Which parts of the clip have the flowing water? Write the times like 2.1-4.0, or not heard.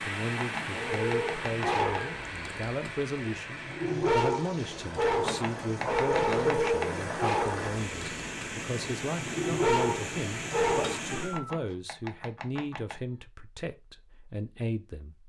0.0-11.4.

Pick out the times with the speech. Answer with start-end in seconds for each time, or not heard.
0.0-15.2.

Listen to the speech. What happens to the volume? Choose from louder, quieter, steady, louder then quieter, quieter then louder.
steady.